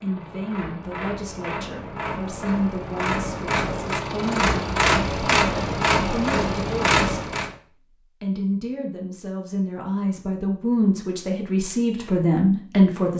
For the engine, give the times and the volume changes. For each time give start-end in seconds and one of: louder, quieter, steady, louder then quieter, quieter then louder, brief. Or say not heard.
0.0-7.5 louder.